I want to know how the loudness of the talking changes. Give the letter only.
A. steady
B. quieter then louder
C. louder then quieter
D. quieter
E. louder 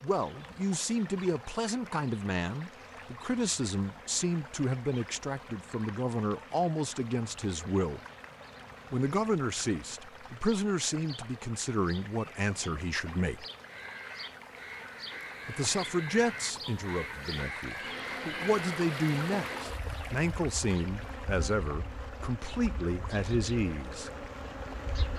A.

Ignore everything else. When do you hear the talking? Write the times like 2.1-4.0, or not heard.
0.0-8.0, 8.9-13.4, 15.4-24.1.